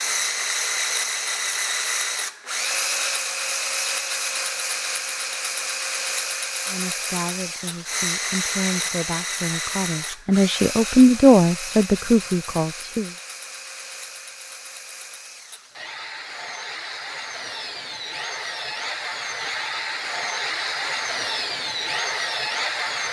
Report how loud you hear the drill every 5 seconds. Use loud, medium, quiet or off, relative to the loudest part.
loud, loud, medium, medium, loud.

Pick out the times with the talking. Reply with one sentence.
The talking can be heard from 6.7 to 13.2 s.